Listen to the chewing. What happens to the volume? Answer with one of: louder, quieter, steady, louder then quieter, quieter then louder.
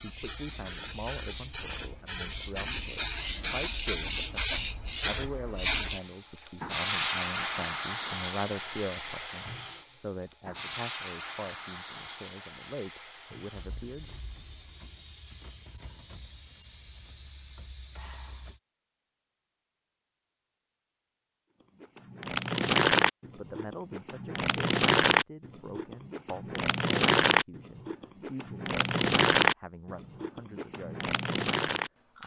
quieter.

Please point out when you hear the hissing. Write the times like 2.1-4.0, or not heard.
0.0-18.6.